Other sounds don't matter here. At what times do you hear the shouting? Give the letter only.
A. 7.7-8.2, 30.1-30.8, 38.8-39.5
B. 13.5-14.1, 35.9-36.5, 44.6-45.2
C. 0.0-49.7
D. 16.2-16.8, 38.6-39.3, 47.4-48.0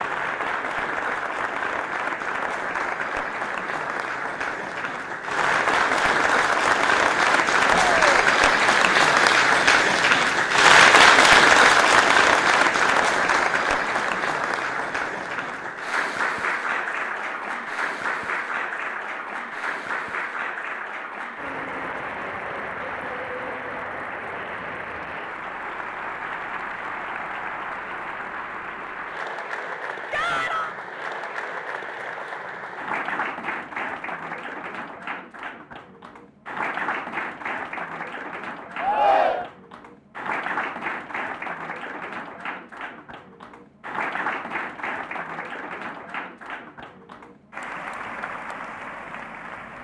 A.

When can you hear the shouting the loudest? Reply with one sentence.
The volume of the shouting peaks at 39 seconds.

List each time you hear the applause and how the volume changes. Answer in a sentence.
You can hear the applause from 0.0 to 49.7 s, getting quieter.